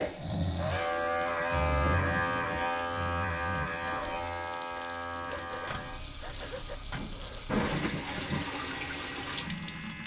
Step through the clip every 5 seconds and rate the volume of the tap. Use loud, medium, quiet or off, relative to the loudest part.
medium, loud.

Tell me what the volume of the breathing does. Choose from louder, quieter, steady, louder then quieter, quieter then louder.
quieter.